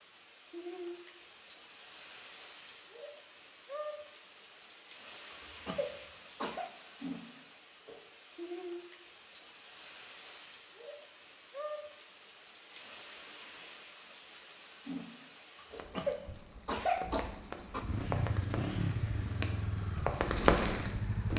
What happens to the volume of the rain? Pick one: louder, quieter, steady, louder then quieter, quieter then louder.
louder.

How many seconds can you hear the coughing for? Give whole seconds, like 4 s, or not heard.
3 s.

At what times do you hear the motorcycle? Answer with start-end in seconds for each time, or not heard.
17.7-21.3.